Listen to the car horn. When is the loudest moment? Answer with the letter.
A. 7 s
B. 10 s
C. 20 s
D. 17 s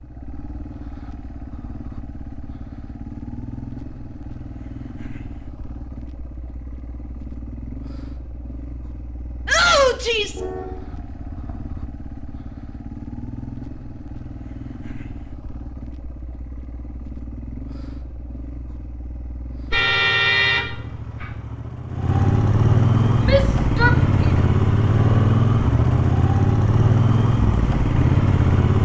C.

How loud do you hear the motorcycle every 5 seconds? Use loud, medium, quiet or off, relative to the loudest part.
quiet, quiet, quiet, quiet, loud, loud.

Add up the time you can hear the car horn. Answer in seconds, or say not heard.
3 s.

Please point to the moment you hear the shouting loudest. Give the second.
10 s.